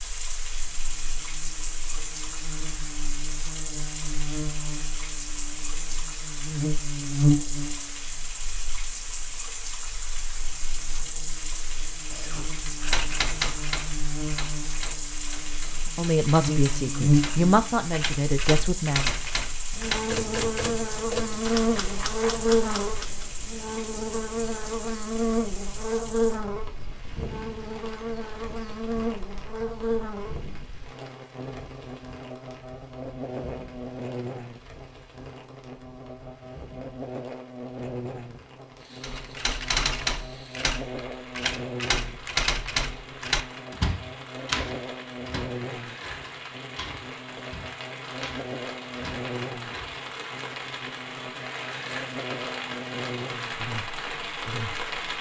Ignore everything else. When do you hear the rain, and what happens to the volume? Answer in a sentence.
You can hear the rain from 0.0 to 55.1 s, getting quieter then louder.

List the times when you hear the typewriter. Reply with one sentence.
You can hear the typewriter from 12.1 to 23.2 s and from 39.0 to 50.0 s.